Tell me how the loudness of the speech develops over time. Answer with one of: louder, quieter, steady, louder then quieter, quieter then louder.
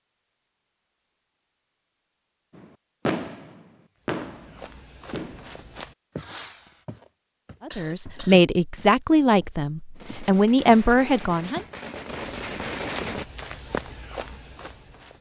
quieter then louder.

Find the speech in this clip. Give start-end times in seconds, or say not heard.
7.7-11.7.